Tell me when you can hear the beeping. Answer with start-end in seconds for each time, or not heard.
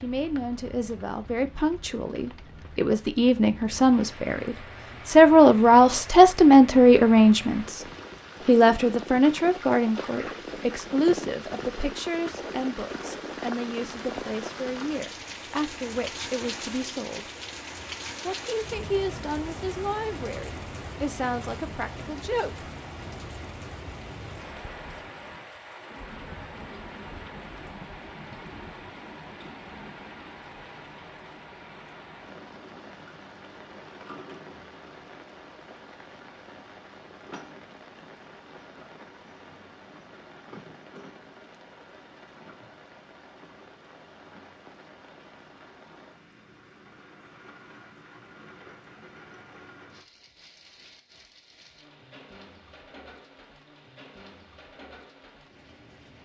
not heard.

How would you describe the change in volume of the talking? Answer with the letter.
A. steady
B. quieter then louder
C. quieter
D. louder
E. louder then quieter
E.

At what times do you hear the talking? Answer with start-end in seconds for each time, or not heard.
0.0-7.8, 8.4-17.3, 18.2-22.7.